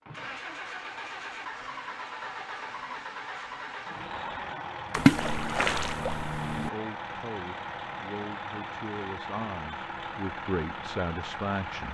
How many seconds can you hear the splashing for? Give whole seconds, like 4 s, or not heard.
2 s.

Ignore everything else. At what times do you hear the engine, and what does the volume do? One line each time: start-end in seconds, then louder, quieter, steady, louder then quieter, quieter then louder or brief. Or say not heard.
0.0-11.9 steady.